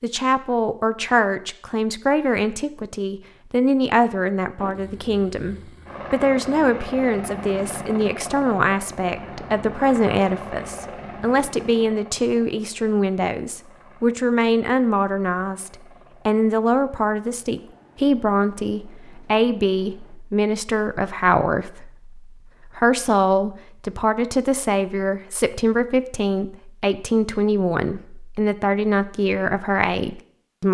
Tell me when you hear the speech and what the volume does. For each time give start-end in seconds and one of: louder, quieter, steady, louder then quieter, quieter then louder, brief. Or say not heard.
0.0-30.6 steady.